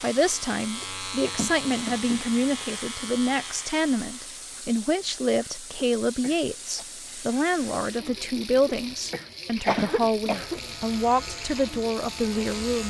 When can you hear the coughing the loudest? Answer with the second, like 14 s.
10 s.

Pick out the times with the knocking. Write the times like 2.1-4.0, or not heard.
1.4-2.2, 9.8-10.3.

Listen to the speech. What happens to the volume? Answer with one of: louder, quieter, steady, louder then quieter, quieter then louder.
steady.